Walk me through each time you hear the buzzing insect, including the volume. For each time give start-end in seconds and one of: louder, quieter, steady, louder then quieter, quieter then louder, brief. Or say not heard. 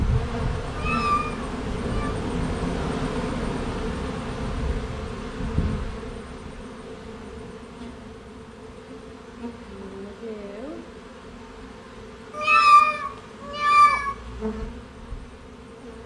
0.0-16.0 quieter.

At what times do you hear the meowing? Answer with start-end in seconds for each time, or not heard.
0.7-2.1, 12.3-14.2.